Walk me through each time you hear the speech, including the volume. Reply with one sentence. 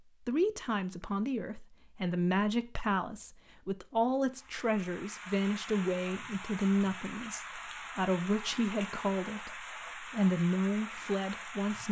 The speech can be heard from 0.2 to 11.8 s, at a steady volume.